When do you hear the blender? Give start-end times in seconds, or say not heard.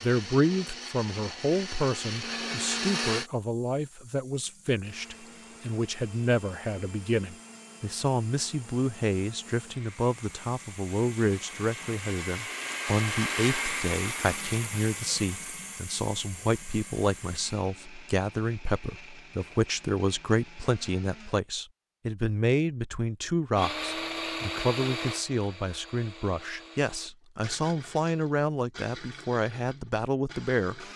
0.0-3.3, 4.8-21.4, 23.6-30.9.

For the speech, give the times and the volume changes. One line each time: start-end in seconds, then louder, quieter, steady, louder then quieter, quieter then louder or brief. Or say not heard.
0.0-30.9 steady.